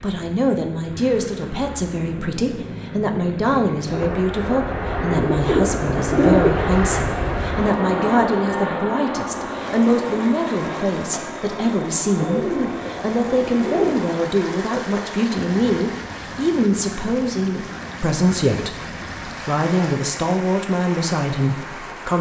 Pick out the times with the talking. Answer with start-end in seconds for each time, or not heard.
0.0-22.1.